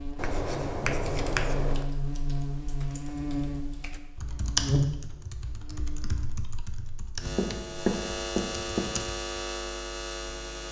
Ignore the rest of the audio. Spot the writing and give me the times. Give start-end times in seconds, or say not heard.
0.1-1.9, 7.3-9.0.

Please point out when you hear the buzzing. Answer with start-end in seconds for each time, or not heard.
0.0-10.6.